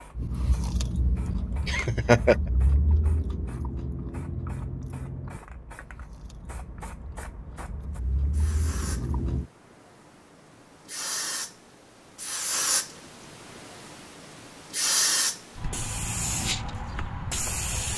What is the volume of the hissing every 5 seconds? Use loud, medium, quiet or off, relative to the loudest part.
quiet, quiet, loud, loud.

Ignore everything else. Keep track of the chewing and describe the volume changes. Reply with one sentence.
The loudness of the chewing goes down, then up.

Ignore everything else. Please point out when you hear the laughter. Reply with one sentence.
You can hear the laughter from 1.6 to 2.4 s.